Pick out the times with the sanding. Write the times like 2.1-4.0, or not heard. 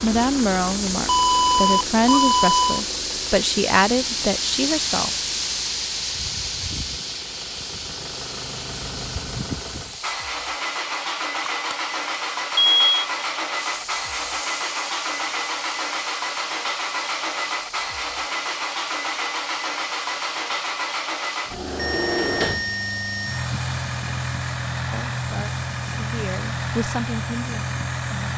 not heard.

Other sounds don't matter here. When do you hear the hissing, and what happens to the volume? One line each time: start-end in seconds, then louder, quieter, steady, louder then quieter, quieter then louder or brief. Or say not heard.
0.0-28.3 quieter.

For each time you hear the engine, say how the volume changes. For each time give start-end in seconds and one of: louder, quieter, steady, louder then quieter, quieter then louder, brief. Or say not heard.
0.0-28.3 louder.